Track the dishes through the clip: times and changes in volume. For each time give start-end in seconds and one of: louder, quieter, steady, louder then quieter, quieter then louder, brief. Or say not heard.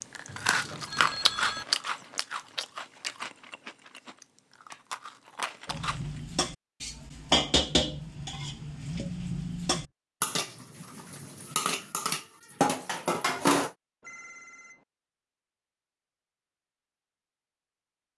5.7-13.7 quieter then louder.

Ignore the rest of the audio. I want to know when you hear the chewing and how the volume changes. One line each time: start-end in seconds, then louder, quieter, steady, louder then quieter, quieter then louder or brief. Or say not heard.
0.0-6.2 quieter then louder.